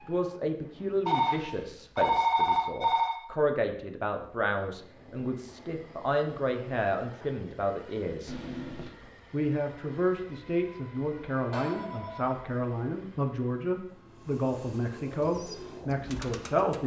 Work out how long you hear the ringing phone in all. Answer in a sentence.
The ringing phone can be heard for 4 seconds in total.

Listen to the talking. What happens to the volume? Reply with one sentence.
The loudness of the talking stays about the same.